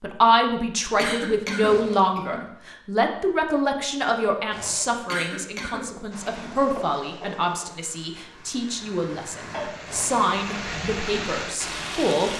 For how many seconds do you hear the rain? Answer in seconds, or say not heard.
6 s.